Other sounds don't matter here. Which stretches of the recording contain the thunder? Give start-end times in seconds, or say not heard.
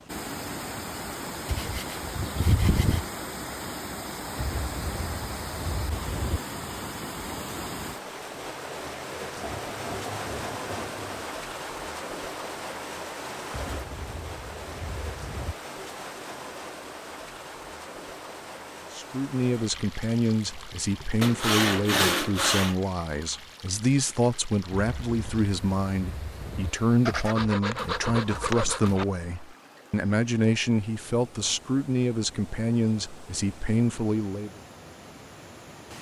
4.3-6.4, 13.5-15.6, 24.7-26.7.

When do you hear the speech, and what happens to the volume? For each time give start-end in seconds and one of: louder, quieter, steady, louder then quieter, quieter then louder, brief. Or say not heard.
18.9-34.6 steady.